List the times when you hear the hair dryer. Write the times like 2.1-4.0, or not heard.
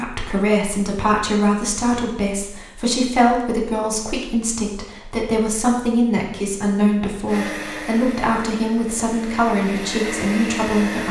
7.2-11.0.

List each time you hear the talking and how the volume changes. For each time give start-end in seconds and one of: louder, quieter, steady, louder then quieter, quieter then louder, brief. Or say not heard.
0.0-11.0 steady.